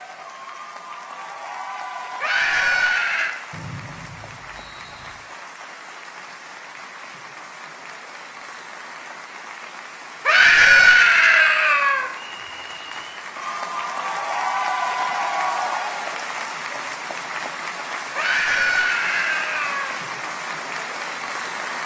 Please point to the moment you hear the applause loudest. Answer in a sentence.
The loudest moment of the applause is at 15 seconds.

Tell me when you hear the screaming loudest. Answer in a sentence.
The volume of the screaming peaks at 11 seconds.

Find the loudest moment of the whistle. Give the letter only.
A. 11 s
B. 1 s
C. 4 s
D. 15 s
C.